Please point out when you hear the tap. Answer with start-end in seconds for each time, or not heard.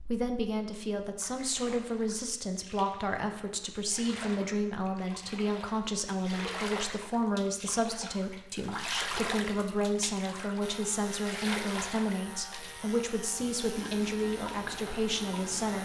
0.0-15.8.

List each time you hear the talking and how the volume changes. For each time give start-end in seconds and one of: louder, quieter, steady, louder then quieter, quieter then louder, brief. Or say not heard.
0.0-15.8 steady.